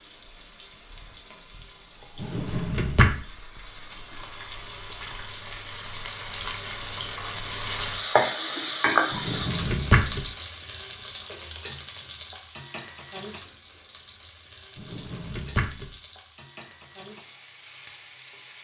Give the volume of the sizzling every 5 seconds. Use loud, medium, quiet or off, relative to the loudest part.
quiet, loud, medium, quiet.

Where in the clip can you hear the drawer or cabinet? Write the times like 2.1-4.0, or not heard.
2.2-3.1, 9.1-10.2, 14.8-15.9.